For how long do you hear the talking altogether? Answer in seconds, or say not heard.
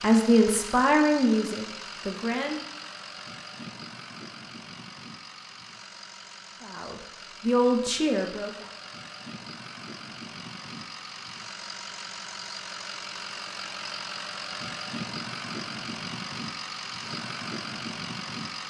5 s.